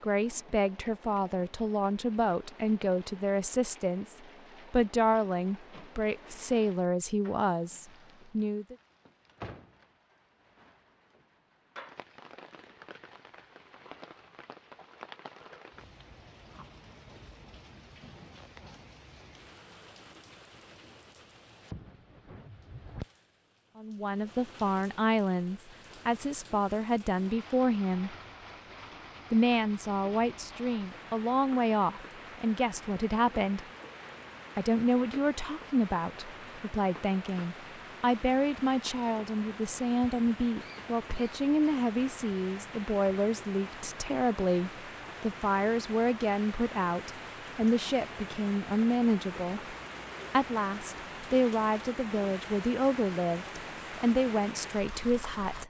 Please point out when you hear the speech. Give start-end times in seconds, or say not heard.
0.0-8.8, 23.8-28.1, 29.3-33.6, 34.5-55.6.